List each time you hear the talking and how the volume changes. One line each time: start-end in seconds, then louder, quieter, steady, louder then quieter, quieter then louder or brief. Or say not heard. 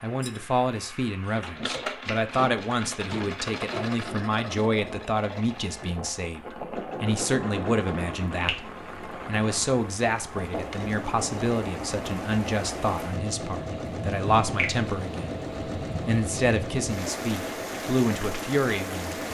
0.0-19.1 steady.